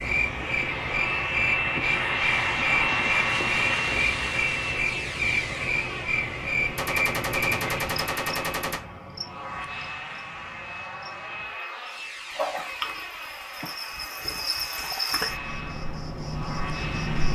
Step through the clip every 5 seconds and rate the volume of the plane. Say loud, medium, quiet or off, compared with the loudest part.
loud, medium, medium, medium.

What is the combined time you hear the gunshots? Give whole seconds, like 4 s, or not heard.
2 s.